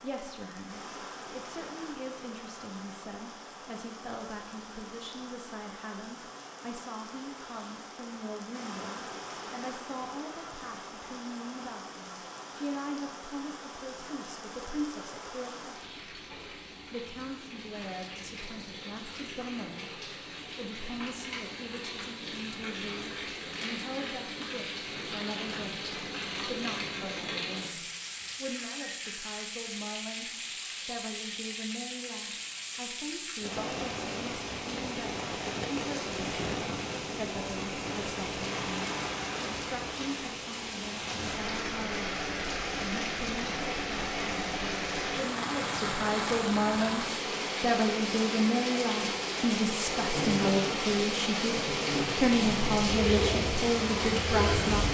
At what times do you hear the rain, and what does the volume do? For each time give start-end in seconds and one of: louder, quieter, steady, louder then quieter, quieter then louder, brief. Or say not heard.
0.0-54.8 louder.